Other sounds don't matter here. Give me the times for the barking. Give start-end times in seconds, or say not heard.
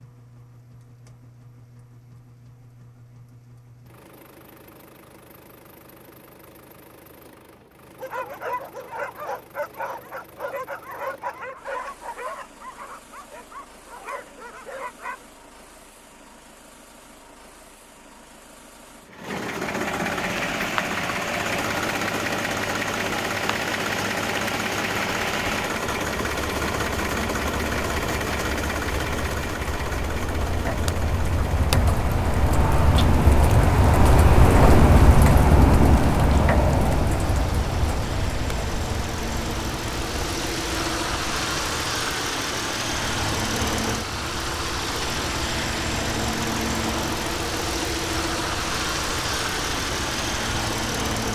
8.0-15.2.